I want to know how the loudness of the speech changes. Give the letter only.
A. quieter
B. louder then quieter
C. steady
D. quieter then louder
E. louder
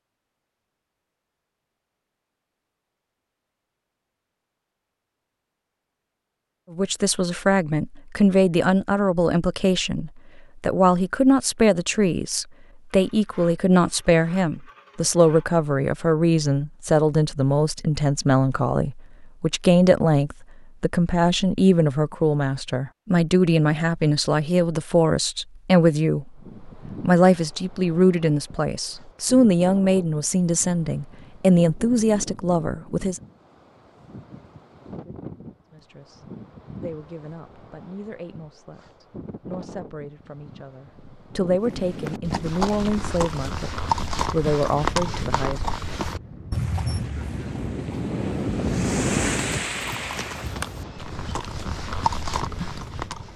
A.